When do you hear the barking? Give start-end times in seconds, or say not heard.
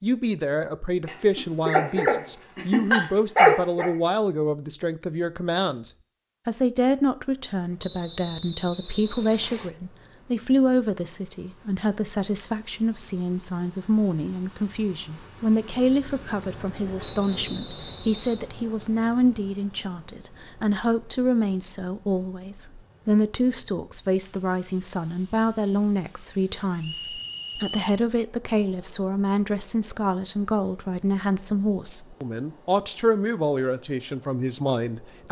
1.1-3.9.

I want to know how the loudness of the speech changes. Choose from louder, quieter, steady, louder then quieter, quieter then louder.
steady.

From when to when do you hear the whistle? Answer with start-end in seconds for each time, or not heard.
7.8-9.7, 17.0-18.5, 26.8-27.9.